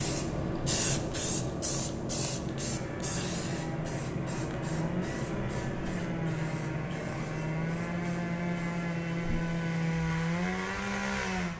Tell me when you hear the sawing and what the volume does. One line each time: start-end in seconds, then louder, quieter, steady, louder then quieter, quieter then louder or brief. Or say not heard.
2.5-11.5 louder.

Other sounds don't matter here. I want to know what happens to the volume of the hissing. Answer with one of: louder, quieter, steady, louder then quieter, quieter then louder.
quieter.